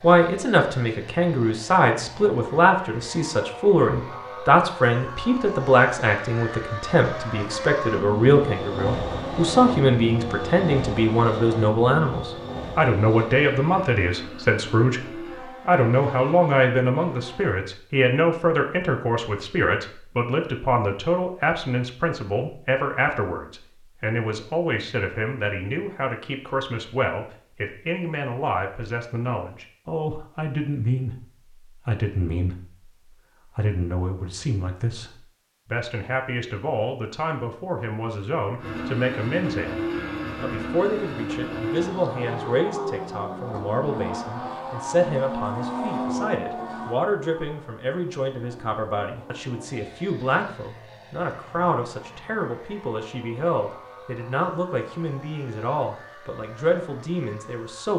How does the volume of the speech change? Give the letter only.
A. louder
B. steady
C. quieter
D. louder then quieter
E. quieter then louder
C.